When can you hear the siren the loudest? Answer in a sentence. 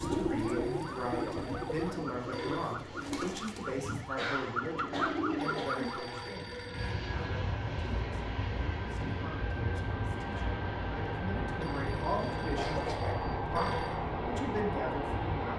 The loudest moment of the siren is at 5 seconds.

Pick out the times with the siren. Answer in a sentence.
You can hear the siren from 0.0 to 6.2 s.